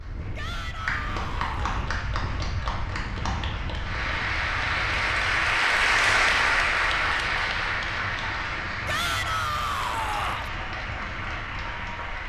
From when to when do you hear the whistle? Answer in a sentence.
You can't hear the whistle here.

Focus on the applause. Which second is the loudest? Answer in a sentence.
The loudest moment of the applause is at 6 seconds.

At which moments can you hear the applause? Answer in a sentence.
The applause can be heard from 0.0 to 12.2 s.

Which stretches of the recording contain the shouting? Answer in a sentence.
The shouting can be heard from 0.3 to 1.8 s and from 8.8 to 10.5 s.